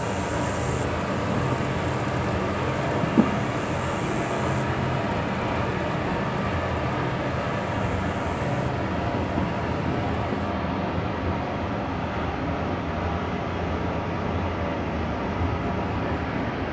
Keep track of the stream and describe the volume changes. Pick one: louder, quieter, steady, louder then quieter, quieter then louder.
steady.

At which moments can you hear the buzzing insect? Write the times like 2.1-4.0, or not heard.
0.0-10.6.